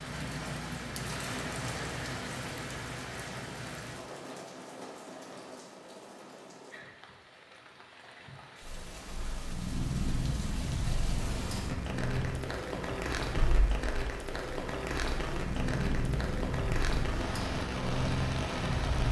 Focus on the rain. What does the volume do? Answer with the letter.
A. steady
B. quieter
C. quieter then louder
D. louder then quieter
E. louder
C.